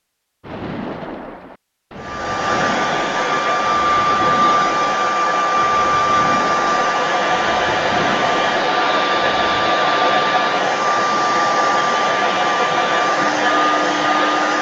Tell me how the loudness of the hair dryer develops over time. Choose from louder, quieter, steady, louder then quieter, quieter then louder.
steady.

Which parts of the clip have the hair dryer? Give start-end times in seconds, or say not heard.
2.0-14.5.